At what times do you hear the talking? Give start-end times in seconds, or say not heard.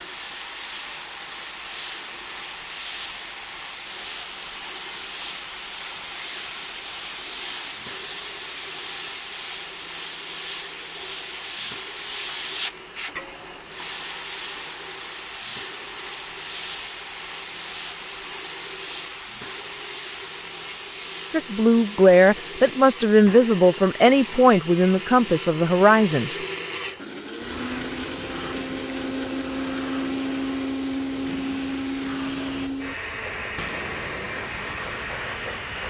21.3-26.3.